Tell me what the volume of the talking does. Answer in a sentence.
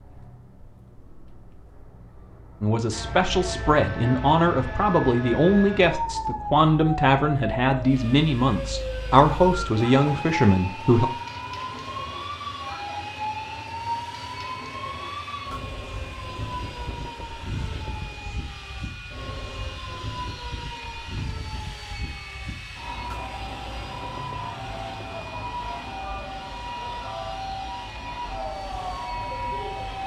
The loudness of the talking stays about the same.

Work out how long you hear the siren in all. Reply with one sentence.
The siren can be heard for 27 seconds in total.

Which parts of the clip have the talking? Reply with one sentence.
You can hear the talking from 2.6 to 11.1 s.